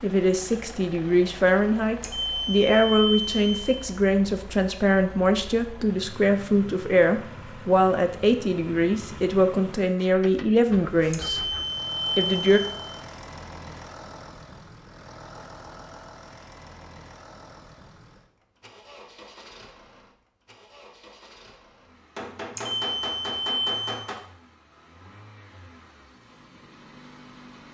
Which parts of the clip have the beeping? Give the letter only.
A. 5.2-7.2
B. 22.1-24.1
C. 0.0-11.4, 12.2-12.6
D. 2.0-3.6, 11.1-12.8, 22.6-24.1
D.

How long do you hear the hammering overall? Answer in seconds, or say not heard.
2 s.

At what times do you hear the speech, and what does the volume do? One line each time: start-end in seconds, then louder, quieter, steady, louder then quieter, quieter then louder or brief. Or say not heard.
0.0-11.4 steady
12.2-12.6 brief.